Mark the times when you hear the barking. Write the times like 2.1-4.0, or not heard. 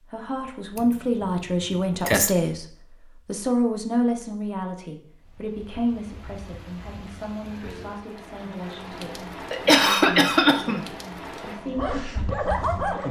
11.6-13.0.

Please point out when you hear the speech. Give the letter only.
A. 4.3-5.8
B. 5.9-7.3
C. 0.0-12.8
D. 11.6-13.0
C.